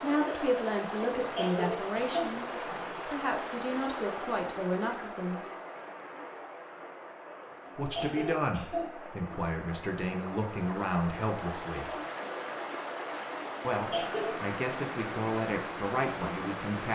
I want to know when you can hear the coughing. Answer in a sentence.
The coughing can be heard from 1.2 to 3.0 s, from 7.8 to 8.9 s and from 13.8 to 14.3 s.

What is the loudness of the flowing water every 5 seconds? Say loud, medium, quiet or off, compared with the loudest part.
loud, medium, loud, loud.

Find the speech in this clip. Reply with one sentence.
The speech can be heard from 0.0 to 5.5 s, from 7.8 to 11.9 s and from 13.6 to 16.8 s.